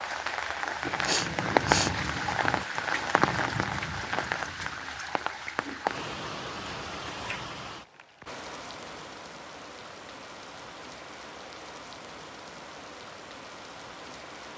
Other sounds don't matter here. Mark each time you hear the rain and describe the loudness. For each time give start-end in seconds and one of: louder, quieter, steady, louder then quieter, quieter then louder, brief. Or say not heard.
0.0-14.5 quieter.